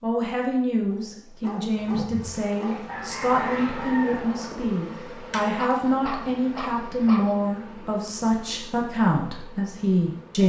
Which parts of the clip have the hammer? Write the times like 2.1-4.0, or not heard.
not heard.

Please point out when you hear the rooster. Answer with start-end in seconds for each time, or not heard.
2.9-4.4.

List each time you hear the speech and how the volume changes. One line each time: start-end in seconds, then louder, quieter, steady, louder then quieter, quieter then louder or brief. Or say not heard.
0.0-10.4 steady.